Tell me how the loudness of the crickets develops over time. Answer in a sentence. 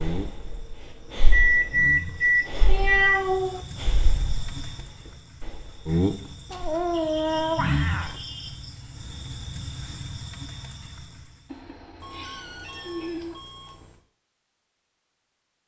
The volume of the crickets goes up, then down.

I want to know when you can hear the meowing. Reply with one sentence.
You can hear the meowing from 2.6 to 3.6 s, from 6.5 to 8.2 s and from 11.4 to 13.3 s.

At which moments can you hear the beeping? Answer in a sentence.
The beeping can be heard from 1.3 to 3.2 s, from 6.5 to 8.5 s and from 12.0 to 14.0 s.